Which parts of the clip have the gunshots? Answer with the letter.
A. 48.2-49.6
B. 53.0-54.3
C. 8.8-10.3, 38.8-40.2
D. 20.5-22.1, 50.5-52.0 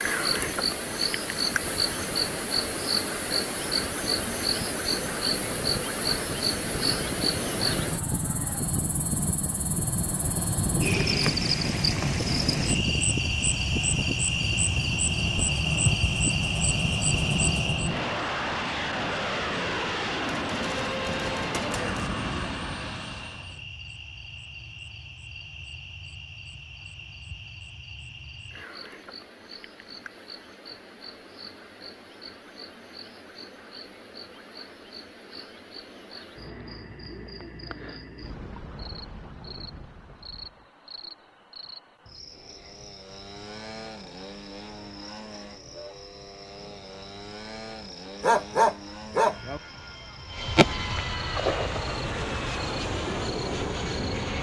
D.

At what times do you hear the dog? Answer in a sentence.
The dog can be heard from 48.2 to 49.6 s.